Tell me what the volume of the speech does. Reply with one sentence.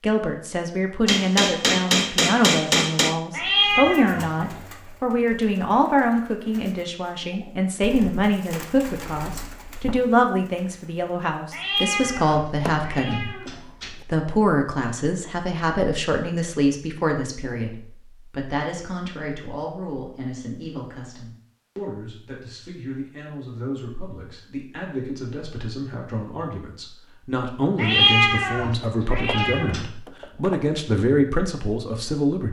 The loudness of the speech goes down, then up.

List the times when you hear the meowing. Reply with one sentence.
You can hear the meowing from 3.3 to 4.3 s, from 11.5 to 14.0 s and from 27.8 to 29.9 s.